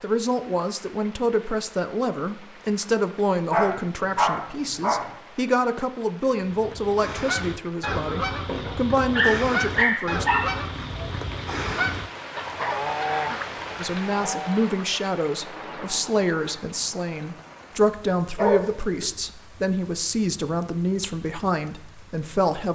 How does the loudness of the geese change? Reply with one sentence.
The loudness of the geese goes down.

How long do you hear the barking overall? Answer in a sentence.
You can hear the barking for 5 seconds altogether.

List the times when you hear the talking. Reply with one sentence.
The talking can be heard from 0.0 to 10.2 s and from 13.8 to 22.6 s.